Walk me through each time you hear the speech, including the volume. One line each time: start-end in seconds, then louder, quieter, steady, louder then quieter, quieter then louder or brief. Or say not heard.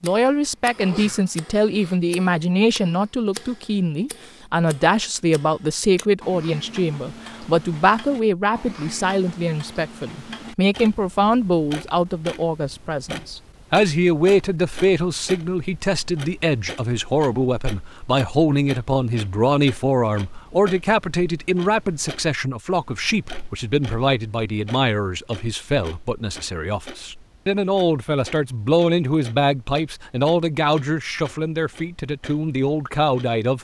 0.0-33.5 steady.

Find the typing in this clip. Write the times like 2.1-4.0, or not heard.
not heard.